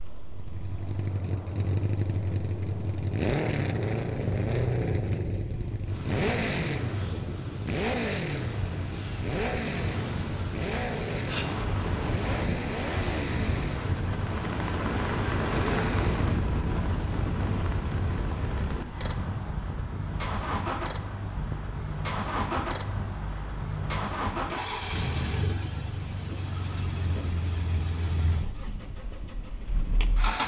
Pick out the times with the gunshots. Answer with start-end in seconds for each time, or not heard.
not heard.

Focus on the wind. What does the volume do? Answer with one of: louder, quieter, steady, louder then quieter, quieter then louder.
louder then quieter.